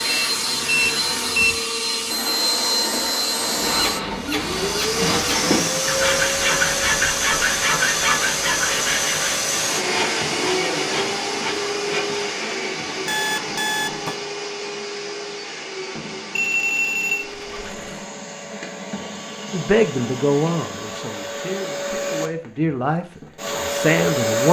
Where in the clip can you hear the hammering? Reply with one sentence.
You can't hear the hammering here.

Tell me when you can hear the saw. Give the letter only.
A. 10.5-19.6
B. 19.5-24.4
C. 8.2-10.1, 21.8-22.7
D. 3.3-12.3
D.